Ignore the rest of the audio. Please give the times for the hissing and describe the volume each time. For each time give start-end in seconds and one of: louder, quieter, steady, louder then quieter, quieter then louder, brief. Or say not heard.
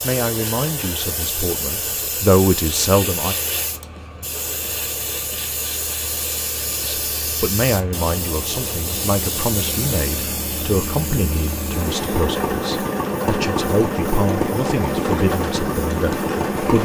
0.0-16.8 quieter.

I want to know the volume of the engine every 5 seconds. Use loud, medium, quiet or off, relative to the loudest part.
quiet, quiet, loud, loud.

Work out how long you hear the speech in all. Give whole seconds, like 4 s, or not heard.
13 s.